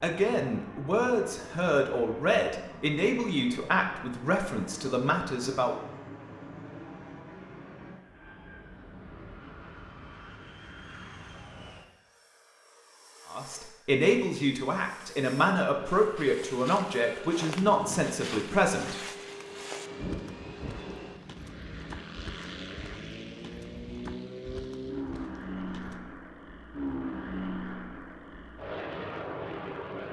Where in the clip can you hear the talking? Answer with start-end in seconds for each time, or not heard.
0.0-5.8, 13.2-19.0.